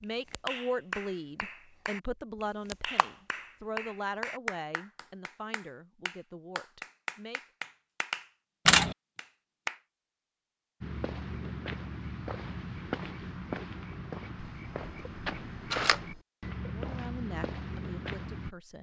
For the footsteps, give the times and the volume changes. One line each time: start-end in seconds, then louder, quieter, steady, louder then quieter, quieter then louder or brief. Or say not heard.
10.8-18.5 steady.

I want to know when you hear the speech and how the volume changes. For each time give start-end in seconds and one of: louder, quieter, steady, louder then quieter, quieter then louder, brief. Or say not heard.
0.0-7.4 quieter
16.7-18.7 brief.